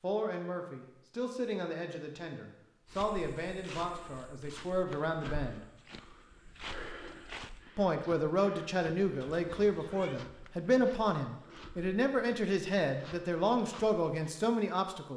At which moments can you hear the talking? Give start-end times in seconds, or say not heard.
0.0-5.7, 7.8-15.1.